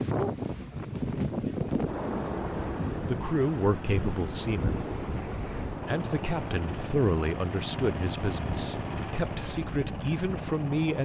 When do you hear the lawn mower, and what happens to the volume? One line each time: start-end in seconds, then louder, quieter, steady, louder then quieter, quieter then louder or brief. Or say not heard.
5.6-11.0 steady.